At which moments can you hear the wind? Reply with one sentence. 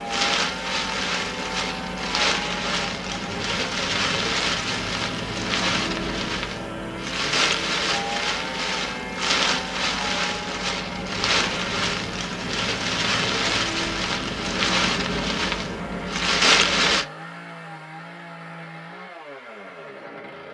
You can hear the wind from 0.0 to 17.1 s.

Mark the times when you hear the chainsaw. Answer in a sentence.
The chainsaw can be heard from 0.0 to 20.4 s.